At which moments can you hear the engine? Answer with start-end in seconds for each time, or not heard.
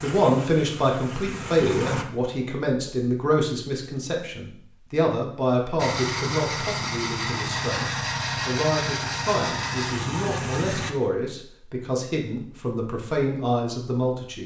0.0-2.0, 5.8-10.9.